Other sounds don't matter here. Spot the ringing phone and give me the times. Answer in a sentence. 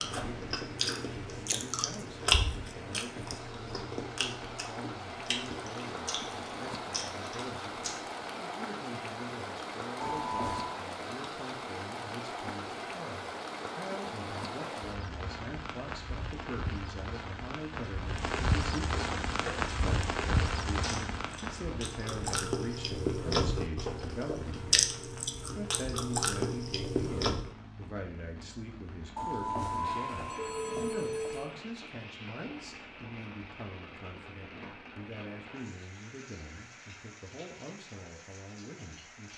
You can hear the ringing phone from 10.0 to 10.8 s and from 29.1 to 31.5 s.